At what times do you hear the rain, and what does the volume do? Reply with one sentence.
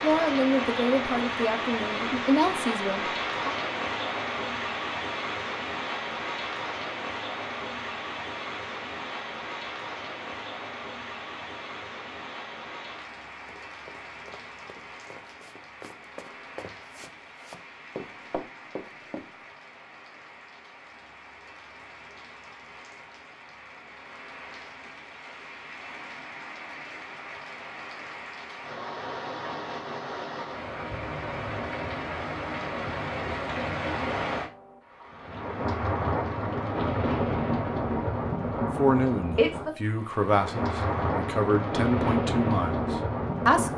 You can hear the rain from 0.0 to 43.7 s, getting quieter then louder.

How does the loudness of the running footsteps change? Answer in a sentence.
The volume of the running footsteps goes up.